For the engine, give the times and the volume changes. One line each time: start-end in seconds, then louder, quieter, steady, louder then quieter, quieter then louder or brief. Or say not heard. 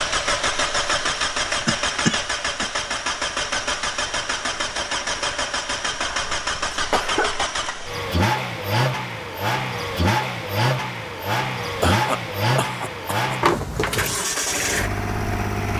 0.0-15.7 steady.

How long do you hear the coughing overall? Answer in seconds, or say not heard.
4 s.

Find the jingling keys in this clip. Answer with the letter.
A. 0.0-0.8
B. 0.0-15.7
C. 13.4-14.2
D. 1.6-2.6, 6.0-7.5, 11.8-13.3
C.